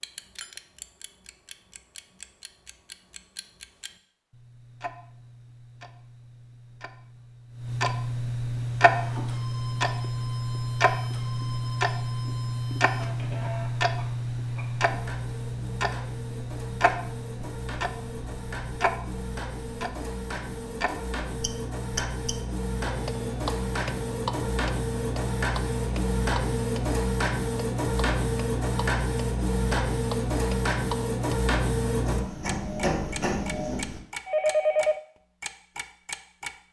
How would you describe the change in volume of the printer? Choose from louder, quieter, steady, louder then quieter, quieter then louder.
louder.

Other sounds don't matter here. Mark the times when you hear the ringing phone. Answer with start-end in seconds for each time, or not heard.
34.2-35.0.